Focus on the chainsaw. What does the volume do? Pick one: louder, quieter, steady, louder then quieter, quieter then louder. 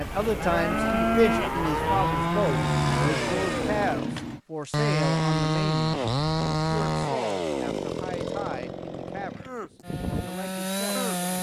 louder then quieter.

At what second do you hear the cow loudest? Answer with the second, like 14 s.
1 s.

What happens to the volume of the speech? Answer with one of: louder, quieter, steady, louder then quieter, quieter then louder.
quieter.